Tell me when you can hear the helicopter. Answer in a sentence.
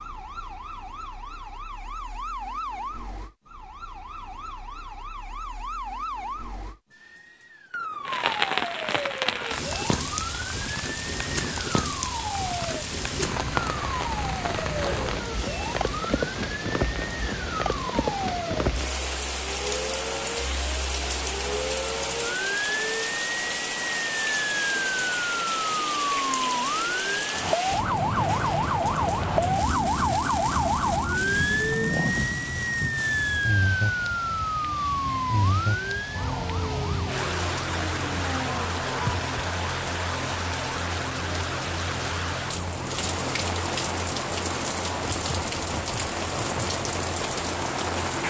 The helicopter can't be heard in this clip.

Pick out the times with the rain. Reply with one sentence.
The rain can be heard from 8.1 to 48.2 s.